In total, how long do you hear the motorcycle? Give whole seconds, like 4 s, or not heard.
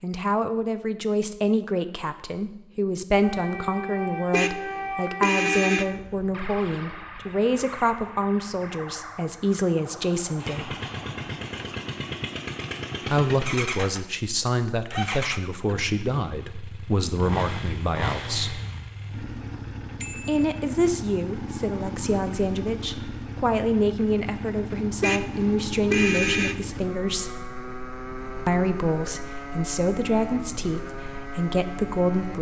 22 s.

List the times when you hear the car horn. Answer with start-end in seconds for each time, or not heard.
4.3-6.0, 25.0-26.6.